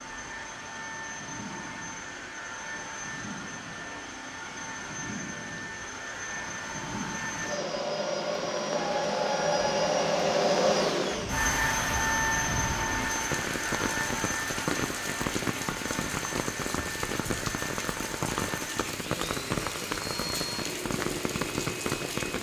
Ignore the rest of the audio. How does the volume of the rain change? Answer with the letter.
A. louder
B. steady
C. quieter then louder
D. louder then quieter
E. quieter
A.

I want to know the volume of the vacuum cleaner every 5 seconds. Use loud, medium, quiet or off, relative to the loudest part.
medium, loud, loud, medium, medium.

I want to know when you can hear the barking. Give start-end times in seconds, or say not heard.
not heard.